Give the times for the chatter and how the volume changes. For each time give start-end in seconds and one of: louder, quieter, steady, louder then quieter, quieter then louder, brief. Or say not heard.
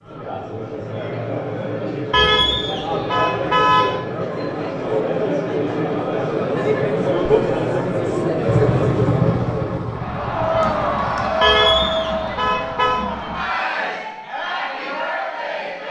0.0-15.8 louder then quieter.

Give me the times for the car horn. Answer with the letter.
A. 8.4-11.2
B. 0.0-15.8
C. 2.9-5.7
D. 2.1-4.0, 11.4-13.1
D.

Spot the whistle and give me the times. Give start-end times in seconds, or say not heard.
not heard.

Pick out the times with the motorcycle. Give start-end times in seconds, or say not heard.
8.4-11.2.